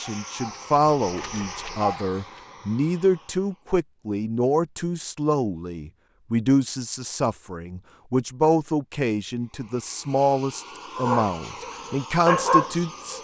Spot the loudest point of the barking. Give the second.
12 s.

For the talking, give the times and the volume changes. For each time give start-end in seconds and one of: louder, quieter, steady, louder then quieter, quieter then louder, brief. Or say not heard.
0.0-13.1 steady.